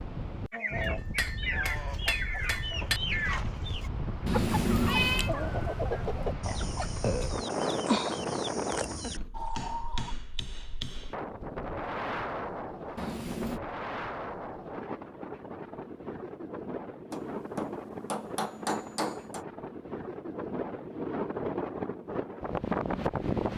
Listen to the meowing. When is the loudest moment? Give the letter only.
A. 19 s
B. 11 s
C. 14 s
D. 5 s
D.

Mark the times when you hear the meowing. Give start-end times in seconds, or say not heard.
4.2-5.3, 12.9-13.6.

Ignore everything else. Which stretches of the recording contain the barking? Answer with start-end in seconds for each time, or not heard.
not heard.